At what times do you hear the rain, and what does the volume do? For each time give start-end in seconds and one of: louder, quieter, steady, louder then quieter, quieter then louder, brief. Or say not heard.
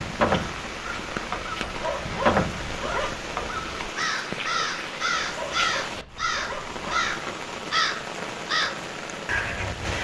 0.0-9.9 steady.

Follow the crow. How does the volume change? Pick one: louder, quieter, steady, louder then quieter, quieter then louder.
louder.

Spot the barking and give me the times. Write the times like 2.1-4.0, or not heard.
1.6-3.2, 5.2-7.2.